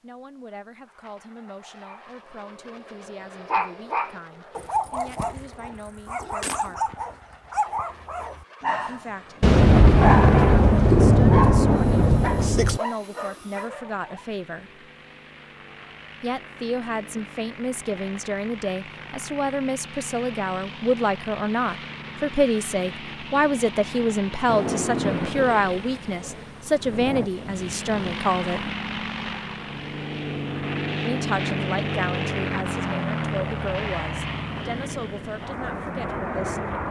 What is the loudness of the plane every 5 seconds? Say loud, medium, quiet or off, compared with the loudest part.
quiet, quiet, quiet, quiet, medium, medium, loud, loud.